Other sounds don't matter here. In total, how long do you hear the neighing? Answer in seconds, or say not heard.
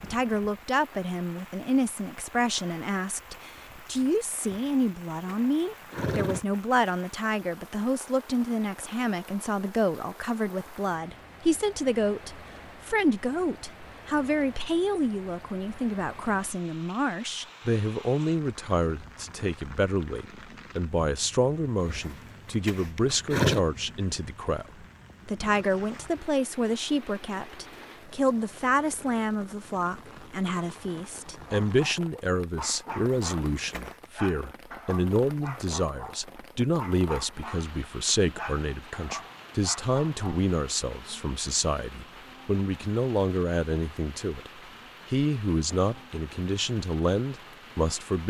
5 s.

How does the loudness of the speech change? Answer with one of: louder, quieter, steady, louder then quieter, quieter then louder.
steady.